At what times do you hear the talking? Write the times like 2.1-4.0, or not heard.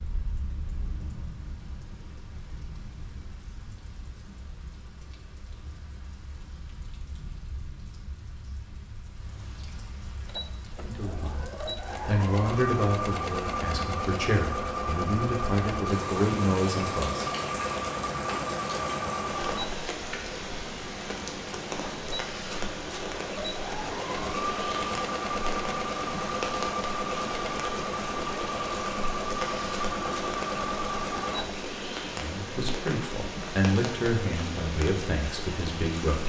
10.8-17.2, 32.1-36.2.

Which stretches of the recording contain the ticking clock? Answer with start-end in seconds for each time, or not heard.
not heard.